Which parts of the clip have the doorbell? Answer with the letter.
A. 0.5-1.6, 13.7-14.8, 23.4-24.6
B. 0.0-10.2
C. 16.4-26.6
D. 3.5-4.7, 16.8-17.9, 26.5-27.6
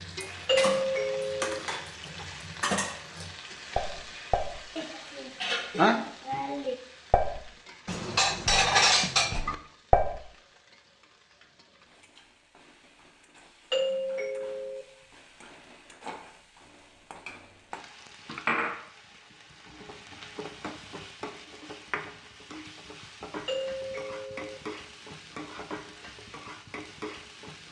A.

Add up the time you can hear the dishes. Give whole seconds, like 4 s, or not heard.
10 s.